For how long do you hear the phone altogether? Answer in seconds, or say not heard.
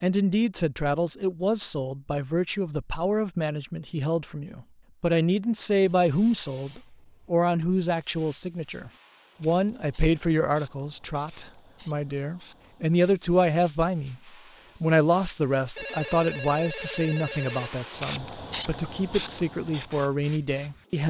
2 s.